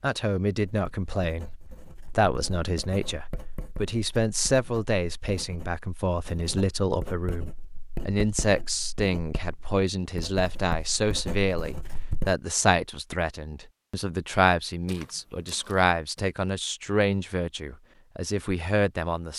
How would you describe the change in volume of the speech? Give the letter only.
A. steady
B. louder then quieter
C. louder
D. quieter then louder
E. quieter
A.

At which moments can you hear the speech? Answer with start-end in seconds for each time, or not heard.
0.0-19.3.